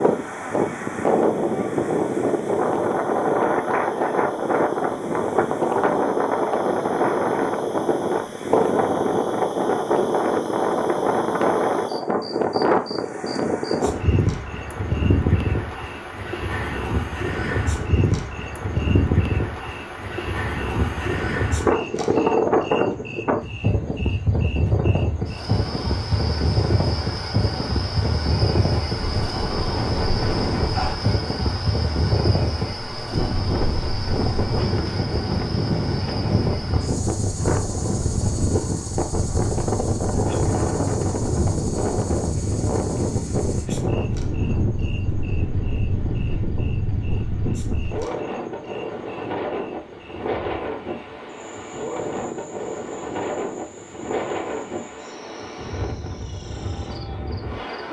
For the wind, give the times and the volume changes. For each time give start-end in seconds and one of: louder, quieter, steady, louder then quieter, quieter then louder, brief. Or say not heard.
0.0-57.8 quieter.